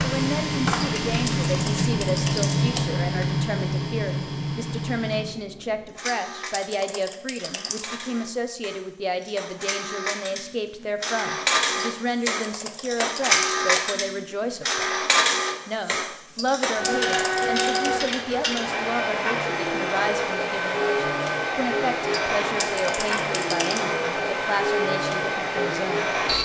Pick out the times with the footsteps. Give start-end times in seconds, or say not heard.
not heard.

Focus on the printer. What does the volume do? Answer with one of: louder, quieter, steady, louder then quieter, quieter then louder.
quieter then louder.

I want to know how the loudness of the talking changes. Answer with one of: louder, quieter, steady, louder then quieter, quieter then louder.
steady.